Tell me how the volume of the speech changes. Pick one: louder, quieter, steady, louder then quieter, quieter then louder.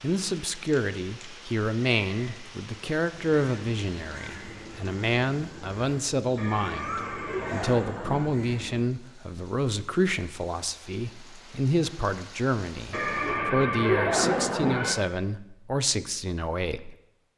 steady.